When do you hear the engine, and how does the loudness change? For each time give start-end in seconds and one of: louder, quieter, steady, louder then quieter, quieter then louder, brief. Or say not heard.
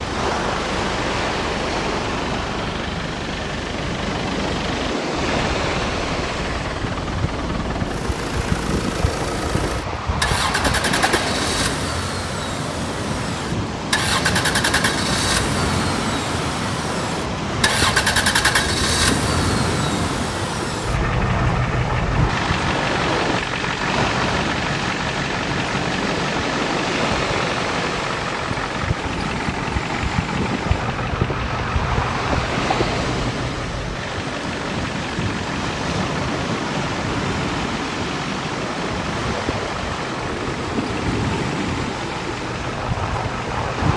0.0-43.9 louder then quieter.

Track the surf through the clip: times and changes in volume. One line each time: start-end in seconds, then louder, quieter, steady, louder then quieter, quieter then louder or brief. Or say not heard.
0.0-43.9 steady.